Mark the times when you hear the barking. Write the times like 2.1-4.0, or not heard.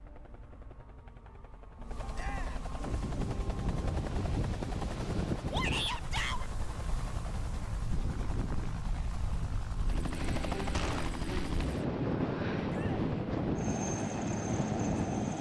not heard.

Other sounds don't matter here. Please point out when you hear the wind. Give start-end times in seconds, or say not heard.
2.9-15.3.